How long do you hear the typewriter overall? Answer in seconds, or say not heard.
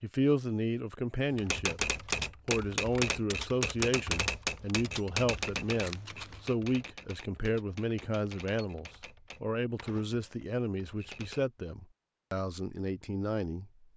10 s.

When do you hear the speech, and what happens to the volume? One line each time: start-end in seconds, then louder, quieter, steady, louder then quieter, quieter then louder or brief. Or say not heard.
0.0-13.8 steady.